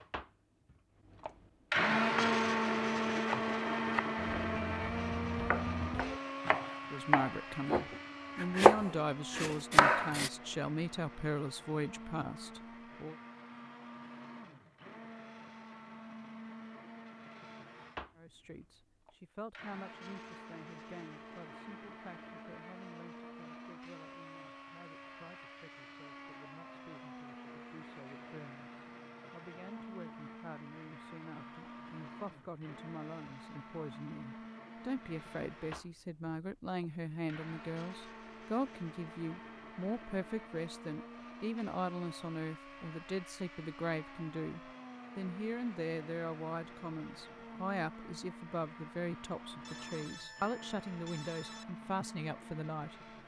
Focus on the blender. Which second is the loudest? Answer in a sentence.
The loudest moment of the blender is at 2 seconds.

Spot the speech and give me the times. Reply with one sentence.
You can hear the speech from 6.9 to 13.2 s and from 18.1 to 53.0 s.